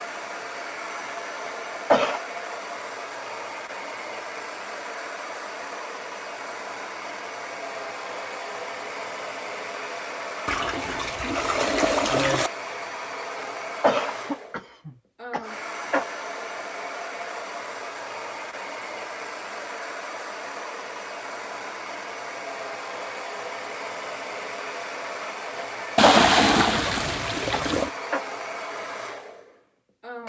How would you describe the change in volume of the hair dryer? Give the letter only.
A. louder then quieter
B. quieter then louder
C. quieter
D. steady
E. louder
D.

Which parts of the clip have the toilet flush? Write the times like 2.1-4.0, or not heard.
10.4-12.5, 25.9-27.9.